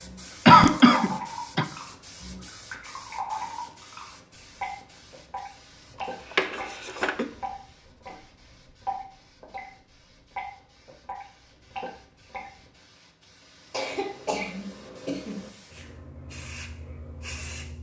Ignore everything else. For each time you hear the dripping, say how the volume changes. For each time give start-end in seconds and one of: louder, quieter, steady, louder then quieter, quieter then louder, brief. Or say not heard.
0.0-9.7 steady
10.3-12.7 brief.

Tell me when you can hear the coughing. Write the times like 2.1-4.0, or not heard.
0.5-1.6, 6.0-7.2, 13.7-15.5.